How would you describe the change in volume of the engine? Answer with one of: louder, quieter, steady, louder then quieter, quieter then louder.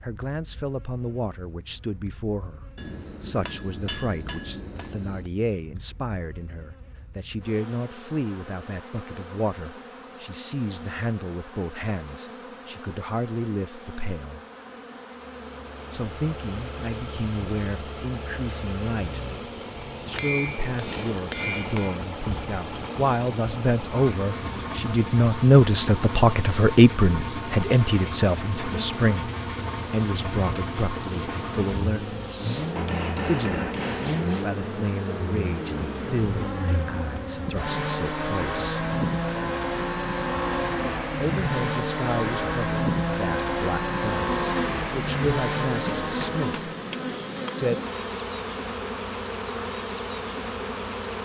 louder.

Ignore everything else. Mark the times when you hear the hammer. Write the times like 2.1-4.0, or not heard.
2.8-5.2, 20.1-21.9, 32.8-34.2, 46.0-47.6.